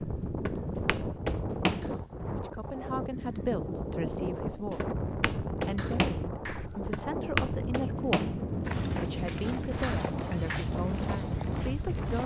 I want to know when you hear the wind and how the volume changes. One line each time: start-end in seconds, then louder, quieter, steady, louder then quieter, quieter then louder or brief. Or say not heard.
0.0-12.2 steady.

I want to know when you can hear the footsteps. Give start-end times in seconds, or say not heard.
0.2-1.9, 4.6-12.2.